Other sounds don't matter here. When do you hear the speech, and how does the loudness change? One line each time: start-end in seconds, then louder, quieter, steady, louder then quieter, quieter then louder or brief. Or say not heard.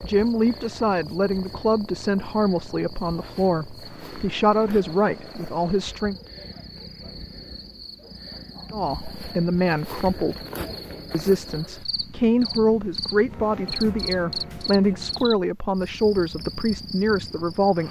0.0-6.2 steady
8.7-10.4 brief
11.1-17.8 steady.